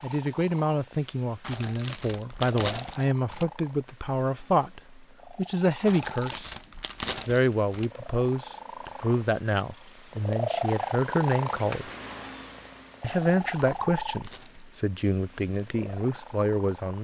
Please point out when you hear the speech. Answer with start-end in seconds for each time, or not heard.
0.0-6.5, 7.2-11.9, 13.0-16.9.